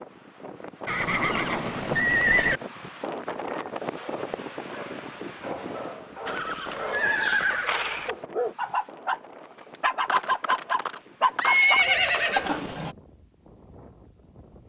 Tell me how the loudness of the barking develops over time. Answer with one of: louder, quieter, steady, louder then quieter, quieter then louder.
louder.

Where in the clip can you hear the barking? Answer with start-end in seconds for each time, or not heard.
3.5-9.2, 9.8-12.9.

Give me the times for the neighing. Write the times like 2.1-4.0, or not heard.
0.8-2.6, 6.2-8.2, 10.1-12.7.